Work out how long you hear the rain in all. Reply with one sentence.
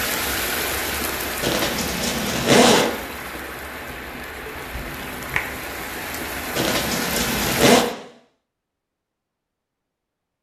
The rain can be heard for 8 seconds in total.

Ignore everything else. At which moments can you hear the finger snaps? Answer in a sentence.
You can hear the finger snaps from 4.5 to 5.6 s.